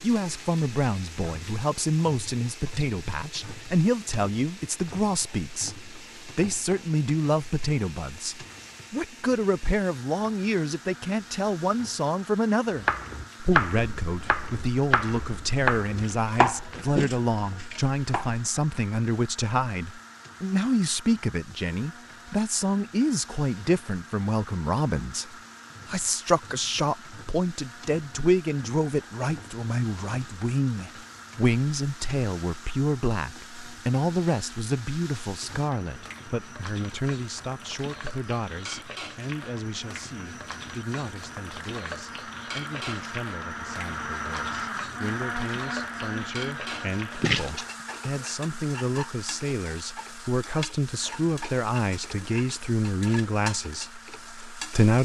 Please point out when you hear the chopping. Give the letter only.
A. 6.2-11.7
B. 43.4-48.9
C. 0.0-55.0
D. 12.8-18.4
D.